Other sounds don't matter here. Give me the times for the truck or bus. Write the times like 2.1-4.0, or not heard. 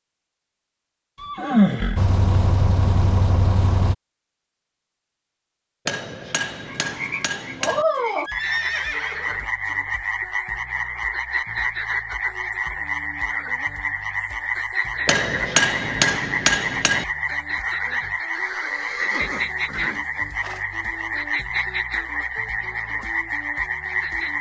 1.9-4.0.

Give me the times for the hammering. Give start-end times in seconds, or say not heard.
5.8-7.8, 15.1-17.1.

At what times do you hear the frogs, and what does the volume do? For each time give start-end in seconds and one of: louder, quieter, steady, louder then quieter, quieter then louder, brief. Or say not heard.
6.7-24.3 steady.